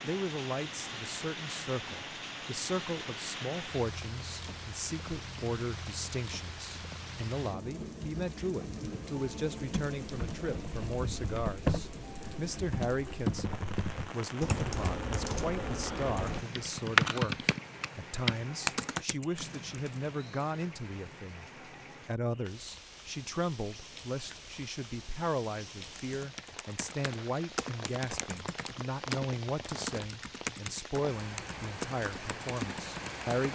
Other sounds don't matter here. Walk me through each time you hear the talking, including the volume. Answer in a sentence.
The talking can be heard from 0.0 to 33.5 s, at a steady volume.